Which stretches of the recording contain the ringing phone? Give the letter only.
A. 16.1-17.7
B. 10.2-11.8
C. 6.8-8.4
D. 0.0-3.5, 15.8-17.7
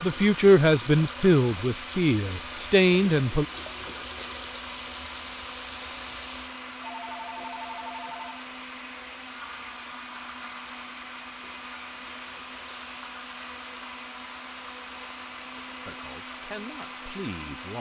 C.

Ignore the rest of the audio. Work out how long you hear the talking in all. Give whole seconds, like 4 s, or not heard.
5 s.